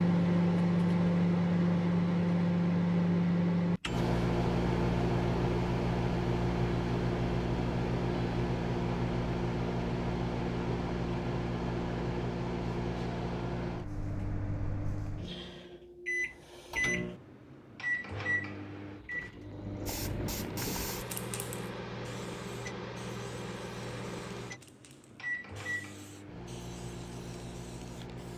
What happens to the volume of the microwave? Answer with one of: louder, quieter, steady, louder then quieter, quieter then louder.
quieter.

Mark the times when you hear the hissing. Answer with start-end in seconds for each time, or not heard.
19.9-28.3.